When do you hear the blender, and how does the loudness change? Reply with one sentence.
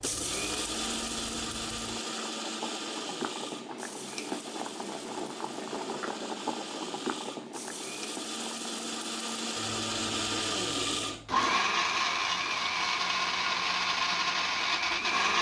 You can hear the blender from 0.0 to 15.3 s, getting quieter then louder.